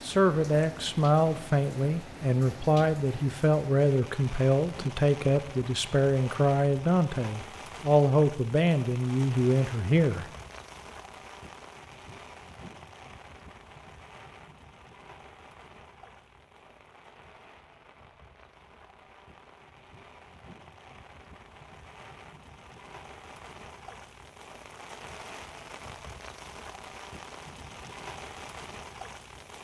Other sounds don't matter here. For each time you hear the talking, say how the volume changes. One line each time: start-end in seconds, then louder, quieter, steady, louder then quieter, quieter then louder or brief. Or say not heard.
0.0-10.2 steady.